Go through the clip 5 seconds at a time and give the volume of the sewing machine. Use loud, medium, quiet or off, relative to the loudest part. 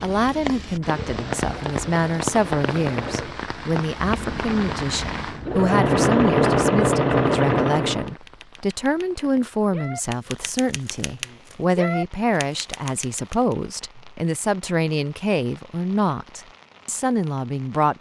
quiet, loud, off, off.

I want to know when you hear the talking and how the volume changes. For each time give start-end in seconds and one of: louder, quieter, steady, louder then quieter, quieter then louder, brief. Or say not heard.
0.0-17.9 steady.